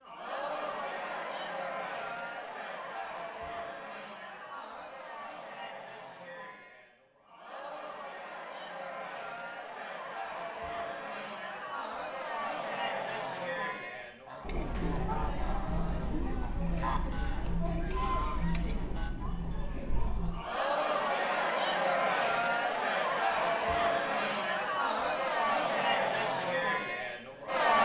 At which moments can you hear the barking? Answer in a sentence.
The barking can't be heard in this clip.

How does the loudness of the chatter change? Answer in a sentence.
The volume of the chatter goes up.